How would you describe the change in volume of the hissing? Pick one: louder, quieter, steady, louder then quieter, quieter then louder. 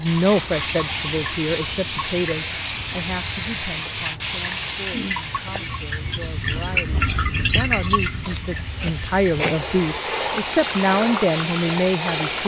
quieter then louder.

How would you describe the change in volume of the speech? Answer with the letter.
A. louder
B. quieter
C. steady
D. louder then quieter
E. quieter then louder
E.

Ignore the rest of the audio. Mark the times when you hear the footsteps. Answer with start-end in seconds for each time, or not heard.
not heard.